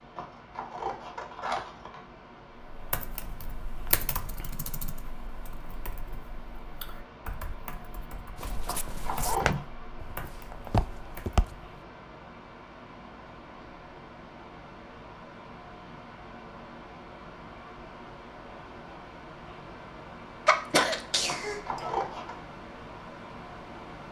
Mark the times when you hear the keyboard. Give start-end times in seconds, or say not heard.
2.6-11.4.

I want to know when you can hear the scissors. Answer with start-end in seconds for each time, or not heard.
0.1-2.0, 8.7-9.6, 21.2-22.4.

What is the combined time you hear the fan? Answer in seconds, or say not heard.
24 s.